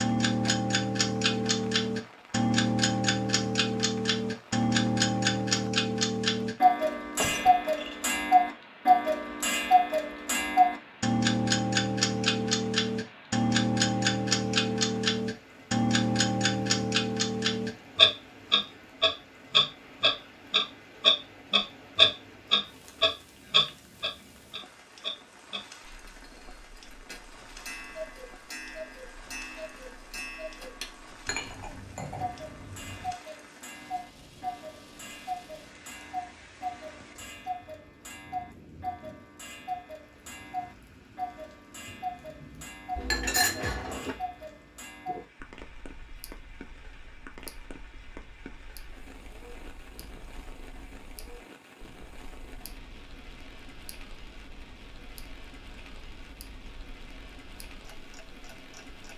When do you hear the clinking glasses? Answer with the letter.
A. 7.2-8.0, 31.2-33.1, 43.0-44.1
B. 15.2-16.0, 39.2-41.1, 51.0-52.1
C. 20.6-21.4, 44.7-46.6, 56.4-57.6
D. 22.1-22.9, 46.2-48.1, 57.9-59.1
A.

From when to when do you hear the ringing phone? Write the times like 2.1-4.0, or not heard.
not heard.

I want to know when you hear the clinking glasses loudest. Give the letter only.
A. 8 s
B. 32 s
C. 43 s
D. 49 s
C.